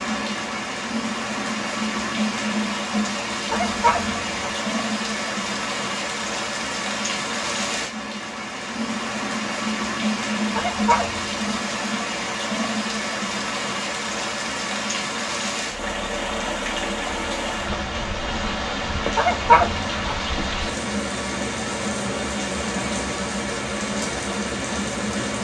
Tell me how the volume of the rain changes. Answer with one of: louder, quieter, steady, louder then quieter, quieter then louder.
steady.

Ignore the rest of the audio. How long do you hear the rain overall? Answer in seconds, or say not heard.
25 s.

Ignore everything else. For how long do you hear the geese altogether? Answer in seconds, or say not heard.
3 s.